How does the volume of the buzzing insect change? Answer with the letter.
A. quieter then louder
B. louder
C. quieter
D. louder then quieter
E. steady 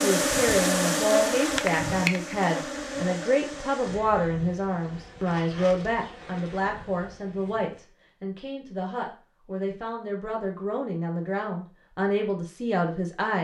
C.